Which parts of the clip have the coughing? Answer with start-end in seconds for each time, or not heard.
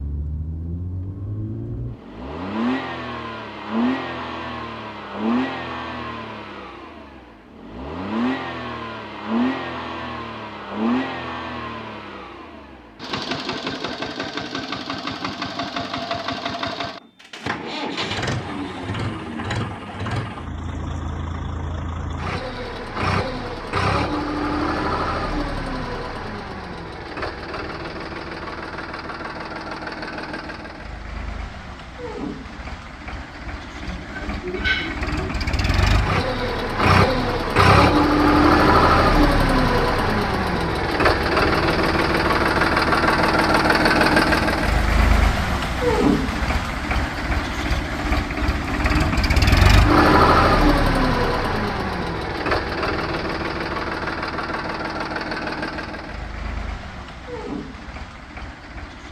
33.8-35.1.